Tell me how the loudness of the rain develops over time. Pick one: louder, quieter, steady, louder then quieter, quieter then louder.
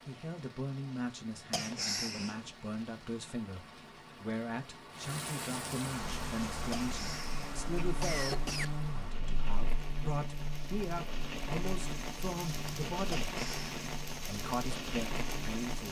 louder.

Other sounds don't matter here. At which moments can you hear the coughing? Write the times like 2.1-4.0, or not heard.
1.5-2.4, 6.7-8.7, 13.1-13.7.